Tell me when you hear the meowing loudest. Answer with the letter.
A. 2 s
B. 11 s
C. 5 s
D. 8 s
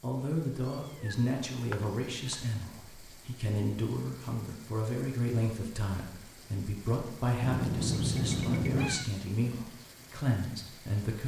D.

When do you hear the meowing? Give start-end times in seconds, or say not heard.
0.6-2.4, 7.4-9.1.